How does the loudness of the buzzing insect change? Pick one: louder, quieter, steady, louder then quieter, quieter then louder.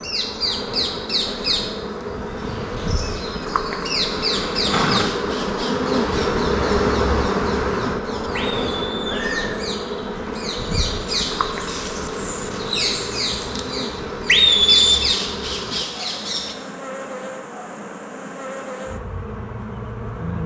louder then quieter.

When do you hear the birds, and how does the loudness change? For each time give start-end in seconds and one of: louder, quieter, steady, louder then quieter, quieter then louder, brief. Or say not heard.
0.0-16.6 quieter then louder.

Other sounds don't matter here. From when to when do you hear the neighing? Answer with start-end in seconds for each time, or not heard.
4.5-5.1, 8.3-9.6, 14.2-15.0.